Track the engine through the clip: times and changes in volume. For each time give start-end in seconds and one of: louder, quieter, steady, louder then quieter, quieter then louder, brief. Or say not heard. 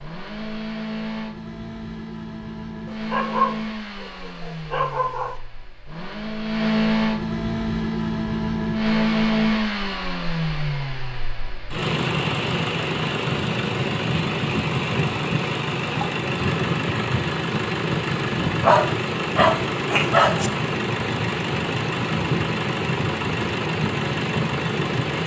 0.0-25.2 louder.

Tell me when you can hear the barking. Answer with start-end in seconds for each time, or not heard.
2.9-5.4, 18.6-20.5.